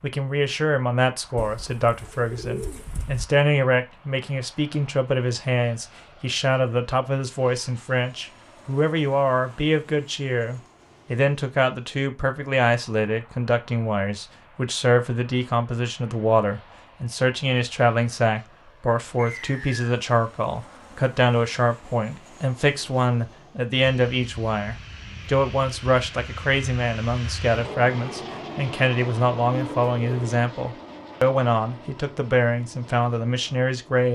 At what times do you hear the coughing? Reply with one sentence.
You can't hear the coughing here.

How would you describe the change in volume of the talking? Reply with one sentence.
The loudness of the talking stays about the same.